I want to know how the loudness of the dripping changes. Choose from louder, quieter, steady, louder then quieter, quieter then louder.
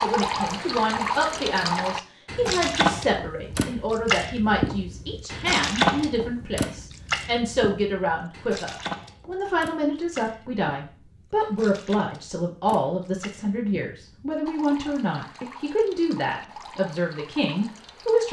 quieter.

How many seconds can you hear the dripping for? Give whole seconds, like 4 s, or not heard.
18 s.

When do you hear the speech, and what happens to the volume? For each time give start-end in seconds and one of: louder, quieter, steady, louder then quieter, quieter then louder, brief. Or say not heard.
0.0-18.2 steady.